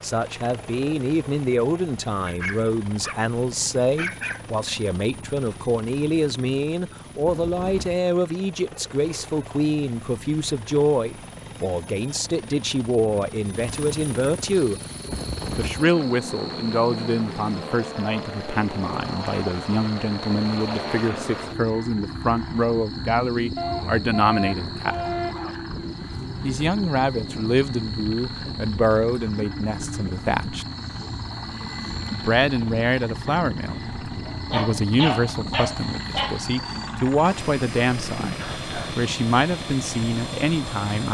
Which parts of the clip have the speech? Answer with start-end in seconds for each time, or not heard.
0.0-14.8, 15.6-24.9, 26.4-30.6, 32.1-41.1.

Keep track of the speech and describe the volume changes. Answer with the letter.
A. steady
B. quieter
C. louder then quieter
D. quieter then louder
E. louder
A.